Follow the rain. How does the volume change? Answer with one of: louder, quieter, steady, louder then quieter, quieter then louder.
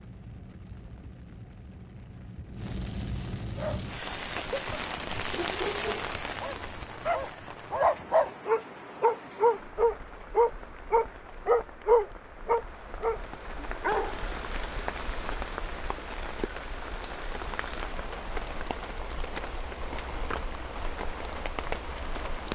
quieter then louder.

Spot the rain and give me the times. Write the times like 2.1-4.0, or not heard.
0.0-22.5.